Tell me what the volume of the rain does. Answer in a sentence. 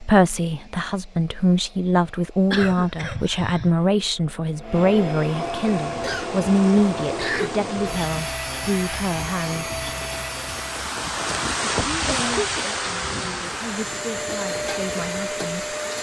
The loudness of the rain goes up, then down.